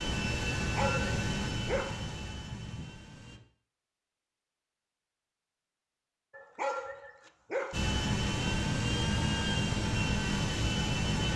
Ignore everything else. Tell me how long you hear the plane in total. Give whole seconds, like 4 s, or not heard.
7 s.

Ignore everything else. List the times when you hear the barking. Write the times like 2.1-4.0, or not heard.
0.6-2.9, 6.3-7.8.